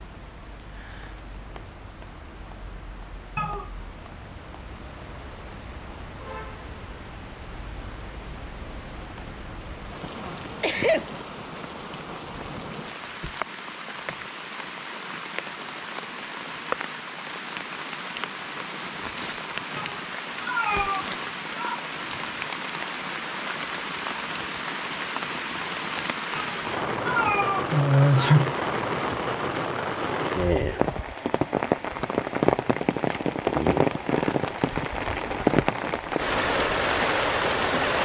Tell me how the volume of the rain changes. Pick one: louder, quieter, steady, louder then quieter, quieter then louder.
louder.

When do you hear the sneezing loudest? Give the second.
28 s.